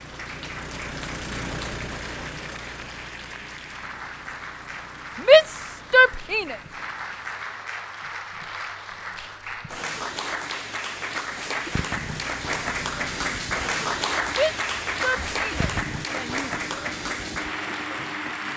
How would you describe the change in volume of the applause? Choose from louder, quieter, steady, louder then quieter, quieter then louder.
louder.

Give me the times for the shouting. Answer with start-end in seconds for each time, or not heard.
5.2-6.5, 14.3-16.8.